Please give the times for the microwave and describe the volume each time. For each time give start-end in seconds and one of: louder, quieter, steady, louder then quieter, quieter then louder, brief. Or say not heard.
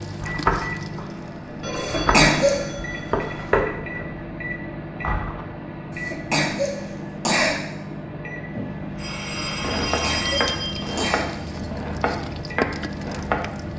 0.0-13.7 steady.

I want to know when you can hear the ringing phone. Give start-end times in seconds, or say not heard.
1.6-3.6, 8.6-11.1.